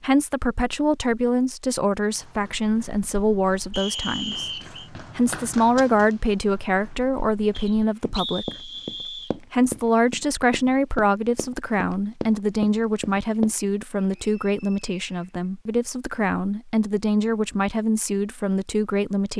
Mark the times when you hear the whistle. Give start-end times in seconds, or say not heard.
3.7-4.9, 7.5-9.3, 13.9-15.4.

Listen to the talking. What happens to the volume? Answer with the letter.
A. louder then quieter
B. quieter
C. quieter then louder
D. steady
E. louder
D.